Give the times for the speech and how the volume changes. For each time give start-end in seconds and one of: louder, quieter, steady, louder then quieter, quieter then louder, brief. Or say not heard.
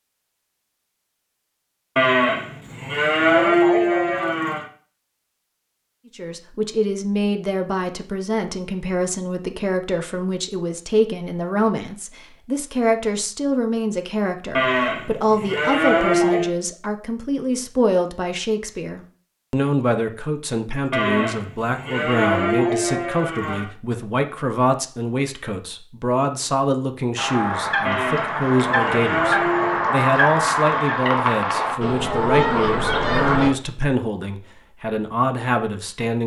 6.2-36.2 steady.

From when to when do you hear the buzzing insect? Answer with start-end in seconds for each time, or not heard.
not heard.